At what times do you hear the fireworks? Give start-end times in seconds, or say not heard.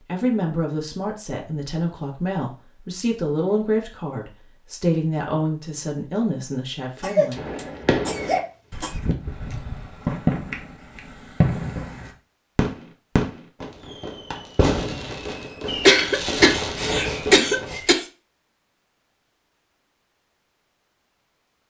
7.3-17.8.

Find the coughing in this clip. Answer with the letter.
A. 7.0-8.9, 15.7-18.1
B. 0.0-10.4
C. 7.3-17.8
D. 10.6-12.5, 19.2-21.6
A.